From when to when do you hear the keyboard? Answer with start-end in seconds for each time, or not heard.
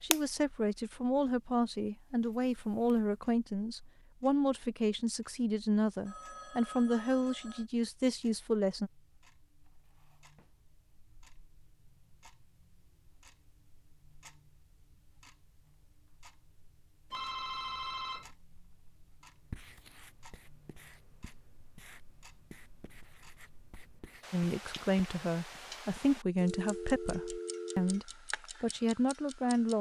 not heard.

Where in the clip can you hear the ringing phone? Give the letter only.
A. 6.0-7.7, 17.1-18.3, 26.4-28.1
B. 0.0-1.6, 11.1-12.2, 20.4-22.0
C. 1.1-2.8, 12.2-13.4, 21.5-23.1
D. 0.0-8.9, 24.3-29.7
A.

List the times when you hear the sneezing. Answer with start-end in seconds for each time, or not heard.
not heard.